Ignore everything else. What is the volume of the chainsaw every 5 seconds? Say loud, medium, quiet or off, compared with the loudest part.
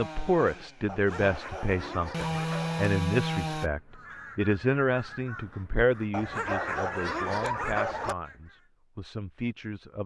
loud, off.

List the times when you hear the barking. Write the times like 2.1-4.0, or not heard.
0.8-2.9, 6.1-8.2.